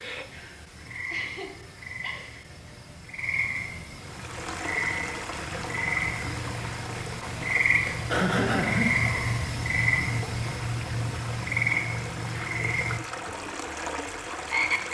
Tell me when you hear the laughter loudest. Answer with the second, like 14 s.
8 s.